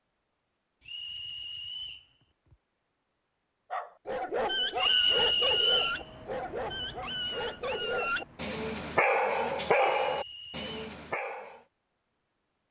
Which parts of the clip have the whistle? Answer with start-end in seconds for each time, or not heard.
0.8-2.1, 4.8-6.0, 9.7-10.7.